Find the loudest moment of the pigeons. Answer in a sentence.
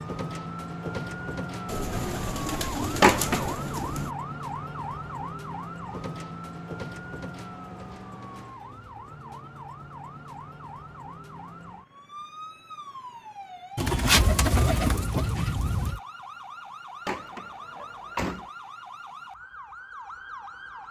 The volume of the pigeons peaks at 14 seconds.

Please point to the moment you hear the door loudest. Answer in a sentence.
The volume of the door peaks at 3 seconds.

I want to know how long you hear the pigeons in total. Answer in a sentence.
You can hear the pigeons for 5 seconds altogether.